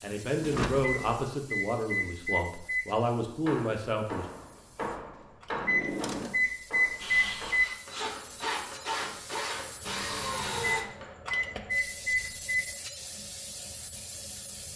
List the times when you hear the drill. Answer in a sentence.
The drill can be heard from 7.0 to 10.8 s.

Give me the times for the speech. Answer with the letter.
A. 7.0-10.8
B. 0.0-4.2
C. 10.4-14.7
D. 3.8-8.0
B.